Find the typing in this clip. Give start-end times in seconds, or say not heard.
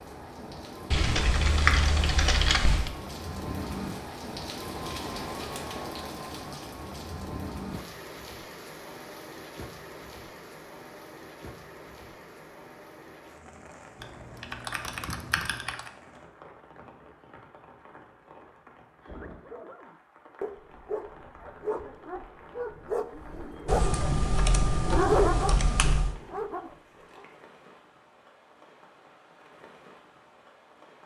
0.9-2.9, 14.0-15.9, 23.6-26.1.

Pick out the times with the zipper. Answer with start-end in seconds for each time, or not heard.
not heard.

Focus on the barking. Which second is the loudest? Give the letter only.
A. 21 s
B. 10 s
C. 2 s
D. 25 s
D.